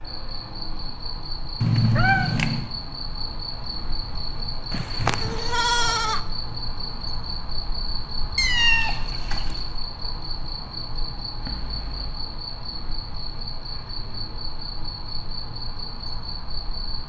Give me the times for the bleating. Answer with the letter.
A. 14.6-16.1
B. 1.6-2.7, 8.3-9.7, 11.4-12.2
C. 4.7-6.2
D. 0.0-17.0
C.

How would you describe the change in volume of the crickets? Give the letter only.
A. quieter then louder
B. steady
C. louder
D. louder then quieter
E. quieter
B.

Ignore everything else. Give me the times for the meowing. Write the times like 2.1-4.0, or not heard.
1.6-2.7, 8.3-9.7, 11.4-12.2.